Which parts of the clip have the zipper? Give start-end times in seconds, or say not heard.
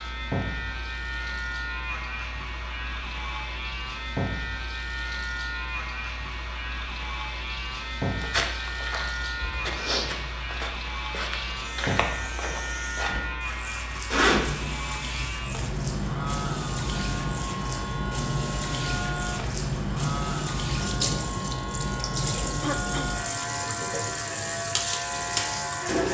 14.1-14.7.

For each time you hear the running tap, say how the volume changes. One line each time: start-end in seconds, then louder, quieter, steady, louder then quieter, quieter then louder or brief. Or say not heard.
0.0-26.0 louder.